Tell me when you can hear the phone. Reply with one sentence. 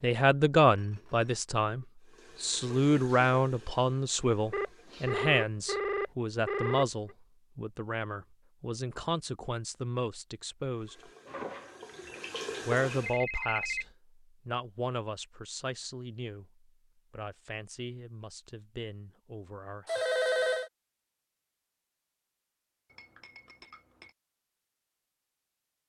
You can hear the phone from 4.5 to 7.2 s, from 13.0 to 13.9 s and from 19.9 to 20.7 s.